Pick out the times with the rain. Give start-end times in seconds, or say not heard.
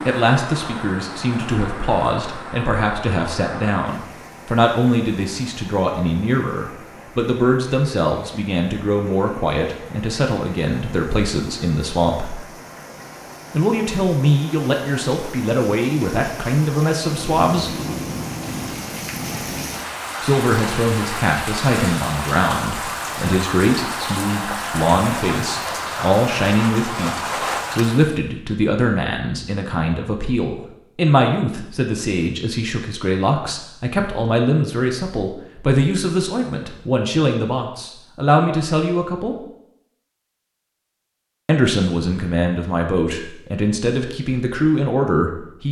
0.0-28.2.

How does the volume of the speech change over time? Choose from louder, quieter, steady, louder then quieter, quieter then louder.
steady.